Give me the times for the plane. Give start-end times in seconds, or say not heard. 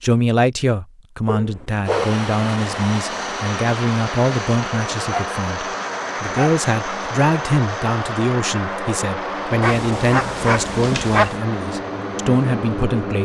1.8-13.1.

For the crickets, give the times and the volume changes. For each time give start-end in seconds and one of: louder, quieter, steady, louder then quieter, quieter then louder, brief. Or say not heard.
not heard.